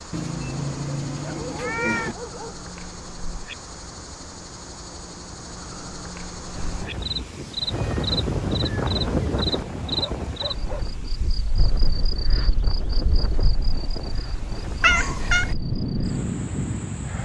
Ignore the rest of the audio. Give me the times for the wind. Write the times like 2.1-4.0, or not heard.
6.5-17.2.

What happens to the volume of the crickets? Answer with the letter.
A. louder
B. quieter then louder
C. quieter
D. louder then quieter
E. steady
D.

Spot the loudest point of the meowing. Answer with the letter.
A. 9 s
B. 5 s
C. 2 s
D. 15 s
D.